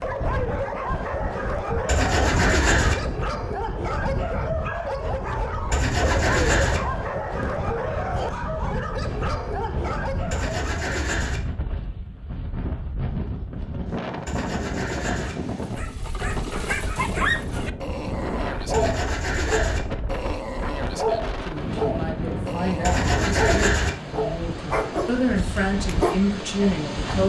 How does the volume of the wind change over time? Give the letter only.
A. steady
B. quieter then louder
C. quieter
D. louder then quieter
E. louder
A.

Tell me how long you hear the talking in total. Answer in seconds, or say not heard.
6 s.